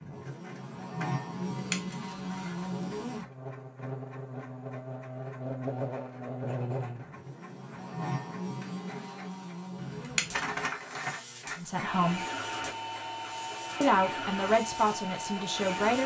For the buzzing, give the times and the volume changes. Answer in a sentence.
The buzzing can be heard from 0.0 to 16.0 s, getting quieter.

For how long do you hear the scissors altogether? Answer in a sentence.
You can hear the scissors for 3 seconds altogether.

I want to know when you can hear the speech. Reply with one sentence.
The speech can be heard from 11.6 to 12.2 s and from 13.8 to 16.0 s.